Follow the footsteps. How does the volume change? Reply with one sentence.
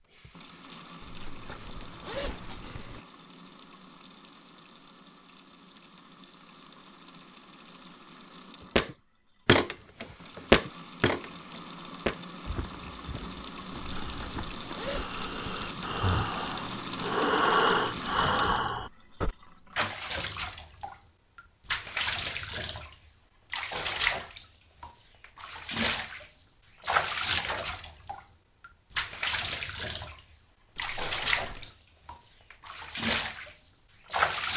The volume of the footsteps goes down.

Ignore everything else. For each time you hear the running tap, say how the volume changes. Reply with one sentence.
The running tap can be heard from 0.0 to 34.5 s, getting louder.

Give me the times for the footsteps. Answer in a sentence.
You can hear the footsteps from 8.8 to 14.9 s.